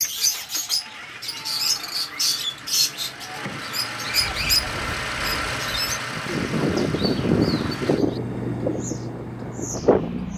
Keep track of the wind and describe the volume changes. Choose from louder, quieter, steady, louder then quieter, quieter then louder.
louder then quieter.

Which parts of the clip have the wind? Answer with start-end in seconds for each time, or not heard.
4.1-10.3.